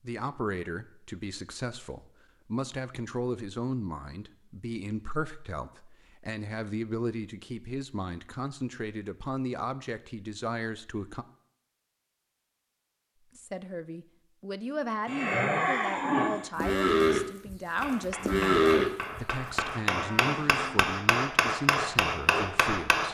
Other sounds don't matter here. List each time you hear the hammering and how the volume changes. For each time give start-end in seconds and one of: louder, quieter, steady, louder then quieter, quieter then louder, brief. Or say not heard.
17.6-23.0 louder.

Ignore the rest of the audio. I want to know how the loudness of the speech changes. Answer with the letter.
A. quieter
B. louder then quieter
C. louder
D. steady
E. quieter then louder
D.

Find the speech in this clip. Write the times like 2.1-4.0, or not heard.
0.0-11.2, 13.3-23.0.